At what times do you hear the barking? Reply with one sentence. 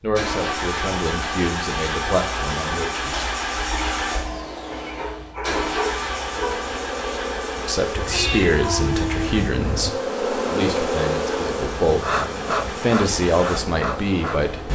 The barking can be heard from 4.7 to 6.7 s.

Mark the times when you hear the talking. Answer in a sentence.
The talking can be heard from 0.0 to 3.2 s, from 7.5 to 12.2 s and from 12.8 to 14.6 s.